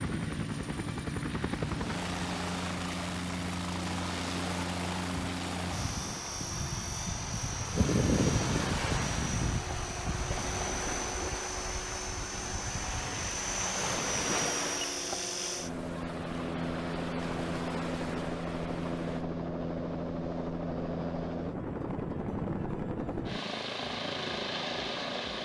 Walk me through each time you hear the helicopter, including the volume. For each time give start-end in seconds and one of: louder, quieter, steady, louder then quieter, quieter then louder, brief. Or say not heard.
0.0-25.4 steady.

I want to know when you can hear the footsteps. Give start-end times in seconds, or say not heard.
not heard.